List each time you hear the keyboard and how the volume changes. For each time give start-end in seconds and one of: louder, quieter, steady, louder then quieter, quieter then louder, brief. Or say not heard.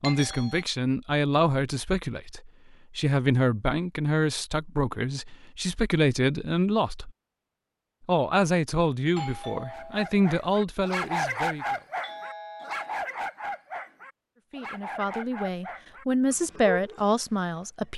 not heard.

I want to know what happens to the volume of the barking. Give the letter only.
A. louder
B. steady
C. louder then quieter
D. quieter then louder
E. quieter
E.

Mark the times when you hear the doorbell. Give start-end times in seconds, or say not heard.
0.0-0.7, 9.2-10.1, 12.0-12.9.